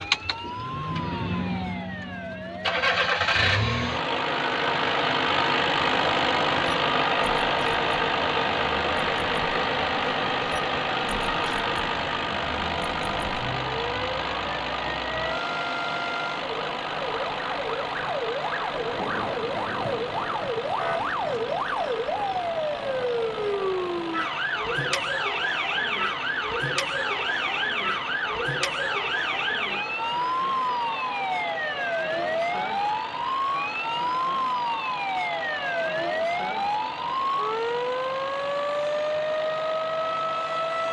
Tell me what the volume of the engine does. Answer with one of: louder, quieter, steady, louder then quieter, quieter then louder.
quieter.